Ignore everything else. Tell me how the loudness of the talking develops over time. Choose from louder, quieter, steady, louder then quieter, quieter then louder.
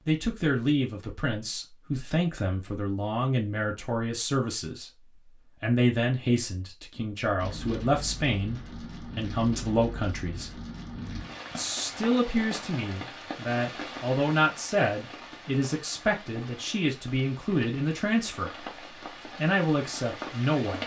steady.